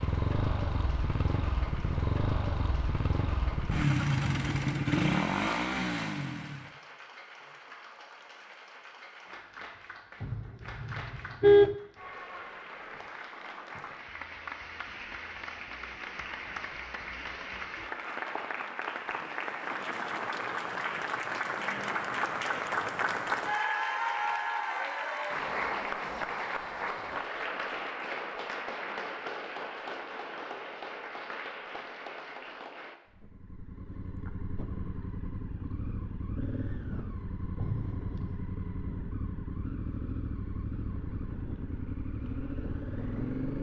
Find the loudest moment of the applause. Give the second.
24 s.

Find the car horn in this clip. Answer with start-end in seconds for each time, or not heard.
10.2-11.8, 37.5-38.4.